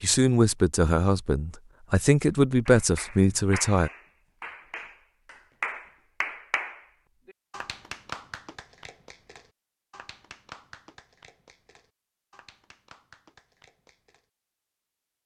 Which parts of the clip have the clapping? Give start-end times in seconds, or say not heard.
2.6-14.2.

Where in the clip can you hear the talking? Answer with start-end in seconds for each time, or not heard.
0.0-3.9.